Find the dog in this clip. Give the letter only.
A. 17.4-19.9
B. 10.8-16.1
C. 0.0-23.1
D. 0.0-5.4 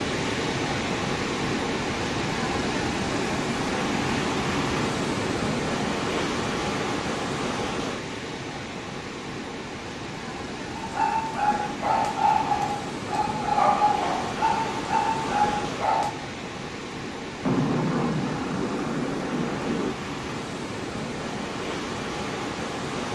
B.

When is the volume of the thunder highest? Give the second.
18 s.